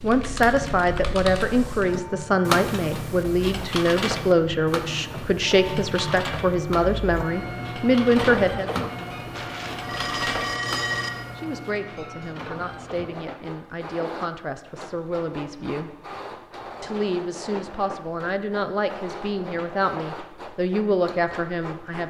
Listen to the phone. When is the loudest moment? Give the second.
11 s.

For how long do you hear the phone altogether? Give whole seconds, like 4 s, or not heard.
2 s.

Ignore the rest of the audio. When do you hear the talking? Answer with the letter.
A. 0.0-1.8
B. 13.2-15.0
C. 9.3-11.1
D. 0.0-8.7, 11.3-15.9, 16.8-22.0
D.